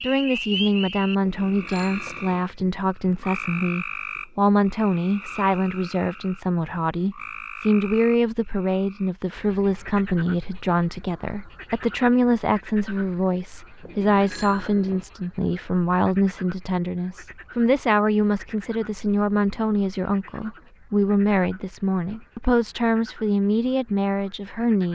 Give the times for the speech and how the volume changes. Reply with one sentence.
The speech can be heard from 0.0 to 24.8 s, at a steady volume.